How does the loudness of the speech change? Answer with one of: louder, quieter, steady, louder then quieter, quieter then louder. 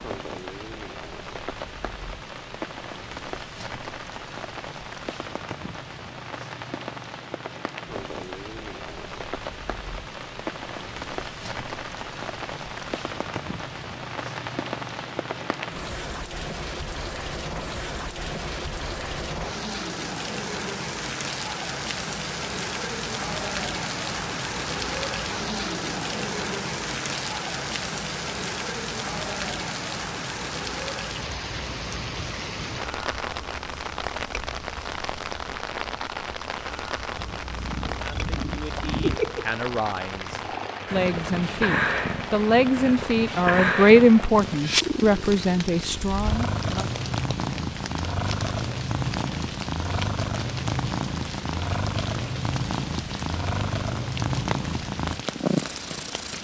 louder then quieter.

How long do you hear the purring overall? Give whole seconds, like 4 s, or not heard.
19 s.